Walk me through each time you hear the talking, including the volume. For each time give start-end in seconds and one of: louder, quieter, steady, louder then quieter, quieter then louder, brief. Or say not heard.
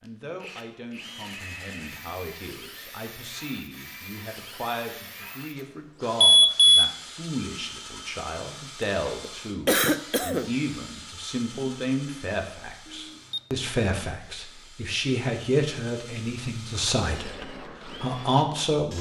0.0-18.9 louder.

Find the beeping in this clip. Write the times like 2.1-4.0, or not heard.
6.2-6.9, 12.8-13.4.